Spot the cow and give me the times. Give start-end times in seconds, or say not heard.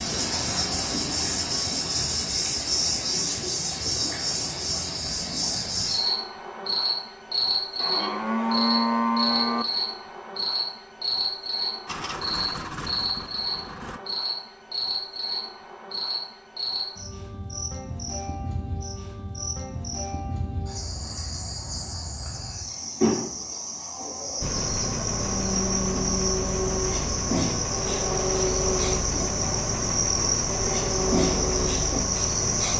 7.8-9.7.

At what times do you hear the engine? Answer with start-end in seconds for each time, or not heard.
11.8-14.0, 24.4-32.7.